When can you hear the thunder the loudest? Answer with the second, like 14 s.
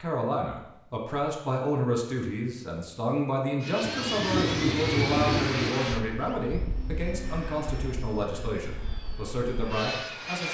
5 s.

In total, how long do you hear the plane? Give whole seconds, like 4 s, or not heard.
7 s.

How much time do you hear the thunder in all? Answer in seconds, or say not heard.
2 s.